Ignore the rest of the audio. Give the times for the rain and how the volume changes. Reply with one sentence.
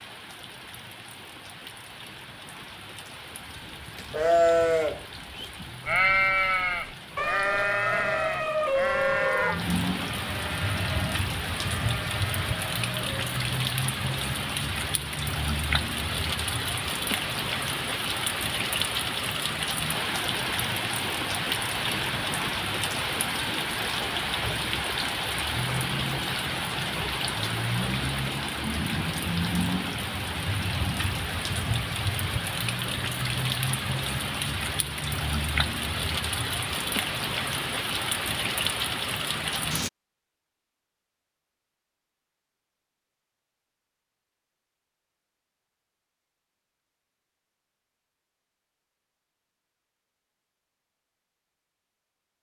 The rain can be heard from 0.0 to 39.9 s, getting louder.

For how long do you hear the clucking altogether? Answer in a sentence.
You can't hear the clucking here.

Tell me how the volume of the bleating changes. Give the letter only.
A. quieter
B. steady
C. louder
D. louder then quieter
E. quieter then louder
A.